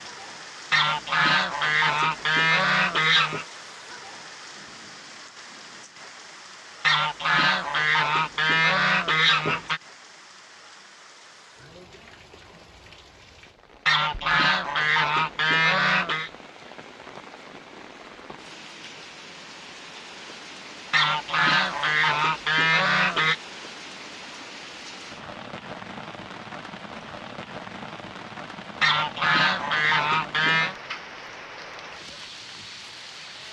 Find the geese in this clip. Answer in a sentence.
The geese can be heard from 0.7 to 3.5 s, from 6.8 to 9.8 s, from 13.8 to 16.3 s, from 20.9 to 23.4 s and from 28.8 to 30.8 s.